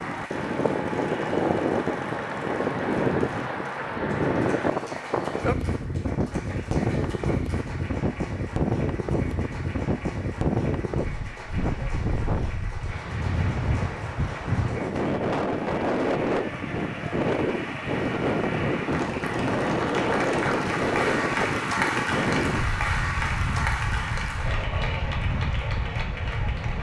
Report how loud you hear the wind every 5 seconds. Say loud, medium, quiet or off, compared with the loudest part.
loud, loud, loud, loud, loud, medium.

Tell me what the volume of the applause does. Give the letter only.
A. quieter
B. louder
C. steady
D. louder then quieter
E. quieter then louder
B.